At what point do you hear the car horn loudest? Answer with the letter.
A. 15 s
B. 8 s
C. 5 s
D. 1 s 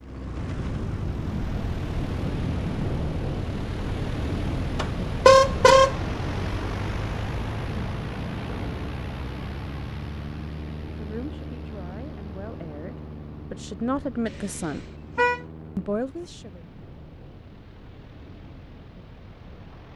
C.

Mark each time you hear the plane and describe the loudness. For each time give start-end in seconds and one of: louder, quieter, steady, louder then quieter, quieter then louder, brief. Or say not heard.
0.0-19.9 quieter.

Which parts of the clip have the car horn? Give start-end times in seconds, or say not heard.
4.8-6.0, 14.2-15.4.